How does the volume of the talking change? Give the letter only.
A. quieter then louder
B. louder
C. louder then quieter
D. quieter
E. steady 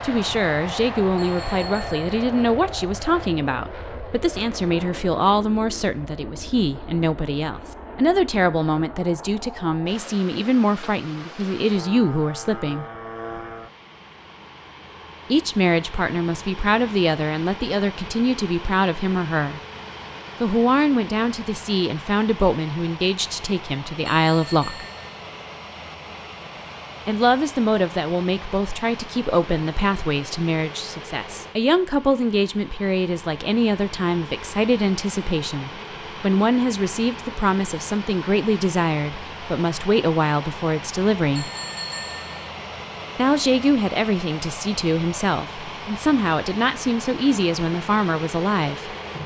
E.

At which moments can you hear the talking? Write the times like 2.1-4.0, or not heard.
0.0-12.8, 15.3-19.6, 20.4-24.9, 27.1-41.5, 43.1-49.0.